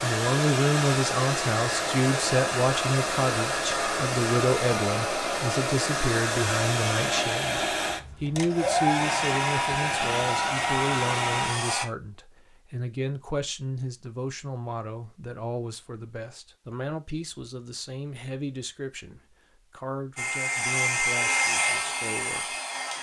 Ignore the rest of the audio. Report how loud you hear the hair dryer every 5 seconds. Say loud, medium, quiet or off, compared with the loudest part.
loud, loud, loud, off, loud.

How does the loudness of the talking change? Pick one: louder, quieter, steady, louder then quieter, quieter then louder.
quieter.